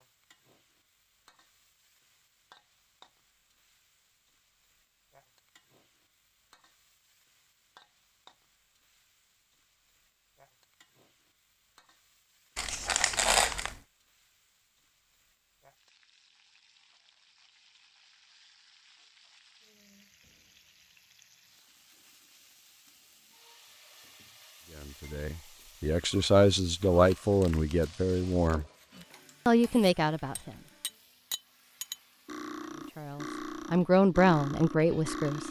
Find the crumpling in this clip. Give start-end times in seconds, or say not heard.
12.6-13.8, 27.1-29.1.